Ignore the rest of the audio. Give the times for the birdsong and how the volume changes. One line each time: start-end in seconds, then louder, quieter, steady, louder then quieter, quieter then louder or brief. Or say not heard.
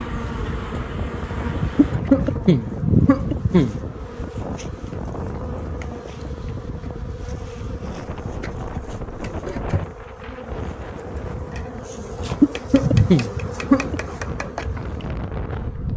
not heard.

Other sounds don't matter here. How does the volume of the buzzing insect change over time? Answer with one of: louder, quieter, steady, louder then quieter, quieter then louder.
quieter then louder.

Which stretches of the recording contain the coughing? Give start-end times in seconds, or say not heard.
1.8-3.8, 12.4-14.0.